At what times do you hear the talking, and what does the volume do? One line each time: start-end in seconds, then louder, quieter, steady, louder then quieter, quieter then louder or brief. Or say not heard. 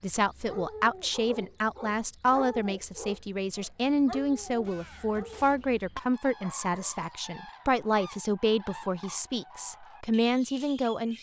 0.0-11.1 steady.